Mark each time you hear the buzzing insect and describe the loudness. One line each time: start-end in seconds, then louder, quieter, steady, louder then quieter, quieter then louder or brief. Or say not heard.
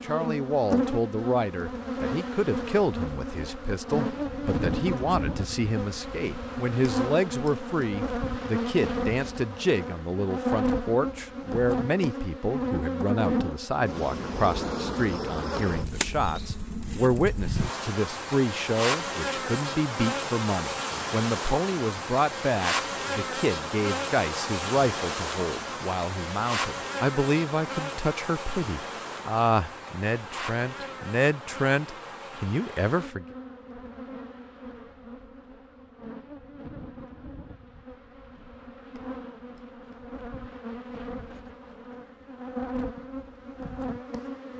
0.0-44.5 quieter.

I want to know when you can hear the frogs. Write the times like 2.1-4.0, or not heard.
not heard.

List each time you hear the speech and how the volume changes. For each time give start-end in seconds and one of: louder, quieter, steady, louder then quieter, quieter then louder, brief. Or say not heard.
0.0-33.2 steady.